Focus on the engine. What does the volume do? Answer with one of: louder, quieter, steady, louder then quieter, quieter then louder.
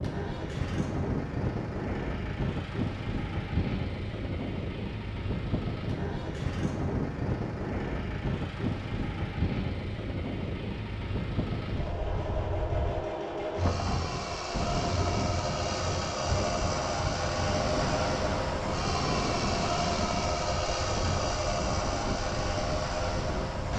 louder.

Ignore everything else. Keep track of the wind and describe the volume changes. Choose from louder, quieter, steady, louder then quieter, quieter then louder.
steady.